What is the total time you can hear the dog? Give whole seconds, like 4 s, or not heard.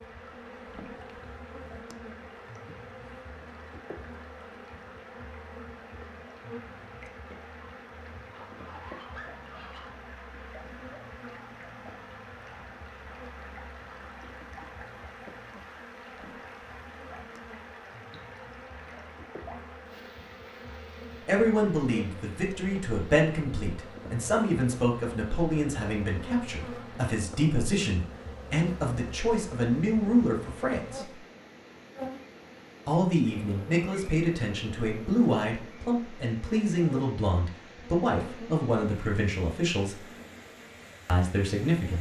2 s.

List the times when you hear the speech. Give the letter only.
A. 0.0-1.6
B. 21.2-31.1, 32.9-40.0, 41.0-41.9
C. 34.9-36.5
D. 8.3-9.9
B.